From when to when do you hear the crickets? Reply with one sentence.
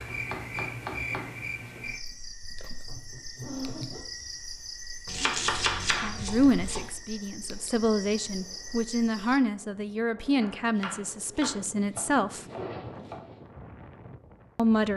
The crickets can be heard from 0.0 to 9.4 s.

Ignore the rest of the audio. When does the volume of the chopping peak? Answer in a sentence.
The volume of the chopping peaks at 6 seconds.